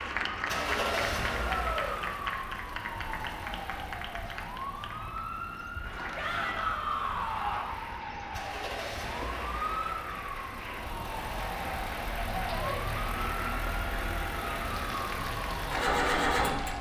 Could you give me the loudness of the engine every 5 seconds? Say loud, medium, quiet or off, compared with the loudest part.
medium, quiet, medium, loud.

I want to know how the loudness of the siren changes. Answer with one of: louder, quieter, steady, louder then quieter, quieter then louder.
steady.